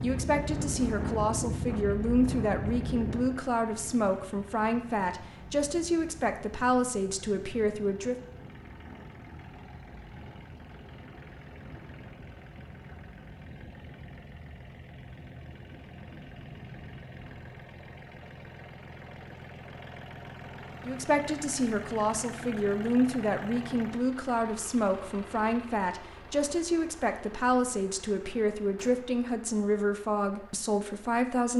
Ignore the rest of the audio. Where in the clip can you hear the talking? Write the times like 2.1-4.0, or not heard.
0.0-8.2, 20.9-31.5.